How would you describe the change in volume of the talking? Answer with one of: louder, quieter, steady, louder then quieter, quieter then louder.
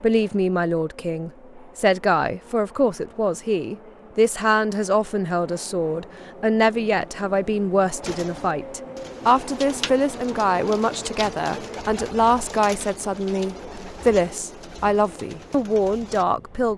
steady.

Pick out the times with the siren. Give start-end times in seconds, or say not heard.
not heard.